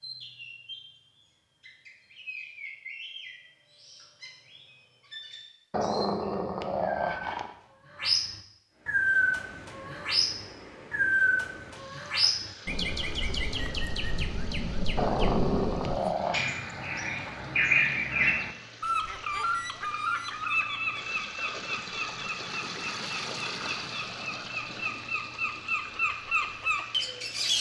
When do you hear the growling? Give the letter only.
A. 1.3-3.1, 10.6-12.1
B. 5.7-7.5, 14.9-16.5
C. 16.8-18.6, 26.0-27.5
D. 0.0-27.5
B.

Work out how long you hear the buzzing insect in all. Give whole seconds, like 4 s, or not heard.
not heard.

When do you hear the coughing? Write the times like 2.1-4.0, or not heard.
not heard.